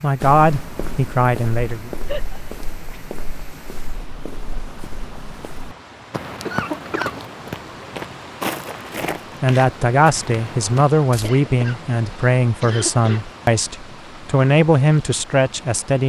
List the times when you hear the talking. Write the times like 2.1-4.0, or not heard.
0.0-1.9, 9.4-16.0.